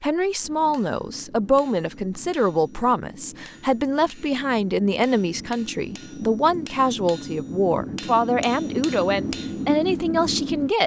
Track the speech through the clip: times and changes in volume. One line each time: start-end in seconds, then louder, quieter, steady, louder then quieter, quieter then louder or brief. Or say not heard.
0.0-10.8 steady.